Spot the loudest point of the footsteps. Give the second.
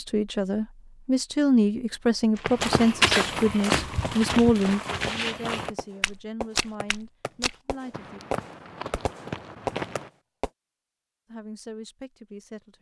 3 s.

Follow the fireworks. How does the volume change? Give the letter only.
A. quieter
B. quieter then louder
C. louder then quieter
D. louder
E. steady
B.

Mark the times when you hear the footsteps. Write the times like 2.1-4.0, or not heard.
2.4-10.1.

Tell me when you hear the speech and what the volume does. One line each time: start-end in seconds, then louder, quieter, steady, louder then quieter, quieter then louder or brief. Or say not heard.
0.0-8.2 quieter
11.3-12.7 brief.